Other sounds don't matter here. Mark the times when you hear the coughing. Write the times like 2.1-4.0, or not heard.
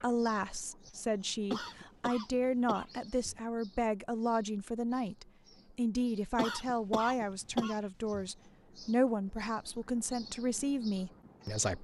1.5-3.4, 6.3-8.2.